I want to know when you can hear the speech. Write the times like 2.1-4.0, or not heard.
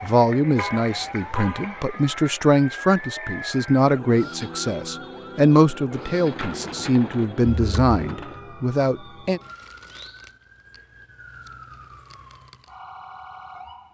0.0-9.4.